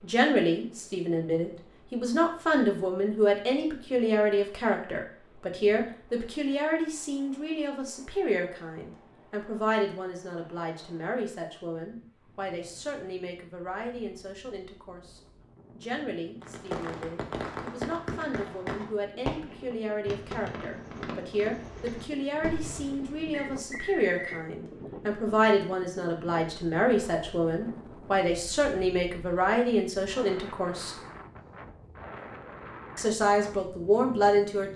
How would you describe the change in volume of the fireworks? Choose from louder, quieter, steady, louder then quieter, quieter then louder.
quieter.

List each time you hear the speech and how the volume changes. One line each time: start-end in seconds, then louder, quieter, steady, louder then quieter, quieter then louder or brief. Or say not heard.
0.0-30.9 quieter then louder
33.0-34.7 brief.